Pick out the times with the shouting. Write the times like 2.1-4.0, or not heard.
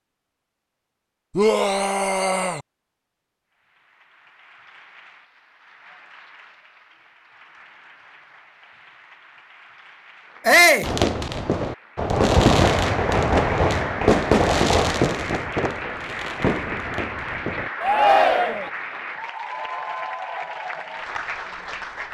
1.4-2.6, 10.4-10.9, 17.8-18.7.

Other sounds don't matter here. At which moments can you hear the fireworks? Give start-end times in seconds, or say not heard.
10.8-17.7.